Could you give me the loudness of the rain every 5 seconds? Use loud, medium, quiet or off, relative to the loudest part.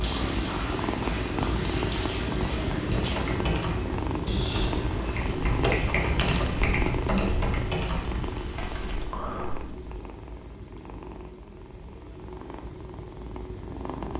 loud, medium, off.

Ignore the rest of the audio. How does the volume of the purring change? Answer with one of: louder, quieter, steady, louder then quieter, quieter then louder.
quieter.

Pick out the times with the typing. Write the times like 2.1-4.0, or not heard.
2.9-9.7.